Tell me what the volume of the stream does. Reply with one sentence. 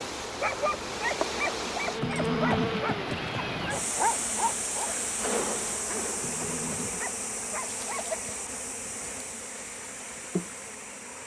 The volume of the stream goes down.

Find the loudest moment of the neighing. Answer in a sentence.
The loudest moment of the neighing is at 2 seconds.